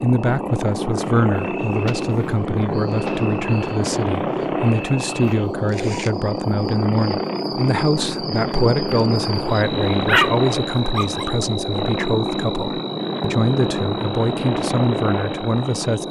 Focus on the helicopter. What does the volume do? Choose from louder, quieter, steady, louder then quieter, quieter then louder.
steady.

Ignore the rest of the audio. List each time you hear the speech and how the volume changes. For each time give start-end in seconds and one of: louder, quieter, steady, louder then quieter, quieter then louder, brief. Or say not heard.
0.0-16.0 steady.